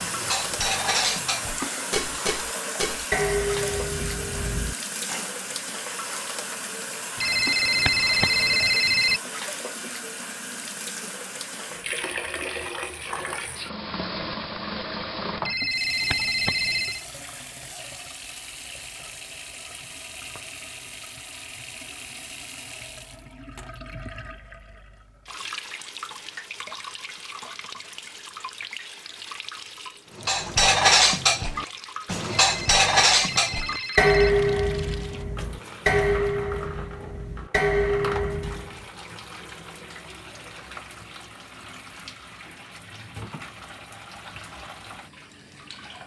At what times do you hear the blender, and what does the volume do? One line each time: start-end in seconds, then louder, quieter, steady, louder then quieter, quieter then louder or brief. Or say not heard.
not heard.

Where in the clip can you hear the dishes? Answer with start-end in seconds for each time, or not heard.
0.0-5.3, 30.1-38.8.